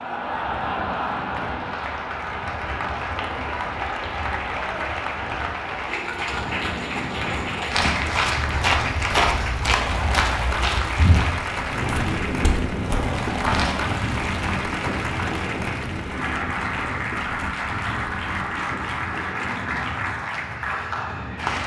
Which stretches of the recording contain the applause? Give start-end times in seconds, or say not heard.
0.0-21.6.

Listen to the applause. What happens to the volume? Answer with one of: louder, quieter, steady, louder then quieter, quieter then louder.
steady.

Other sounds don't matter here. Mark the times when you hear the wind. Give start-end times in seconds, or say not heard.
0.2-21.6.